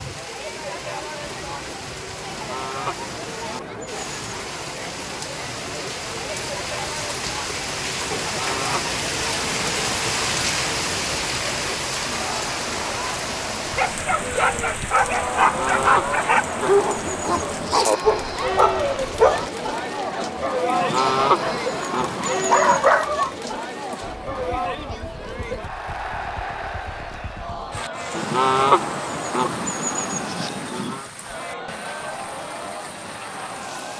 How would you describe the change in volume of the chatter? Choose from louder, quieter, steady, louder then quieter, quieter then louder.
louder then quieter.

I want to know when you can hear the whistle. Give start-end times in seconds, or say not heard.
not heard.